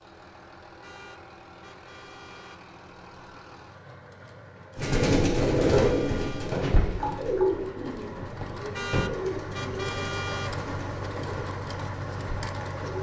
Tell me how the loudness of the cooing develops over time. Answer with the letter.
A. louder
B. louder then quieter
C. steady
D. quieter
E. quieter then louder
D.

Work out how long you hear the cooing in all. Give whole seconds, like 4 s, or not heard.
8 s.